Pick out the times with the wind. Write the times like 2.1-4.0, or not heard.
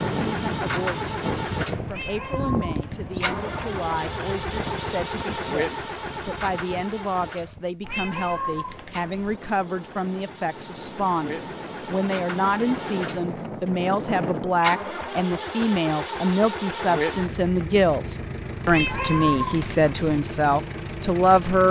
0.0-14.7.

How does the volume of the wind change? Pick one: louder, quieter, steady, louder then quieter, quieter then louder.
quieter then louder.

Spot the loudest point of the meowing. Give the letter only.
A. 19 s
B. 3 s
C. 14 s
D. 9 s
A.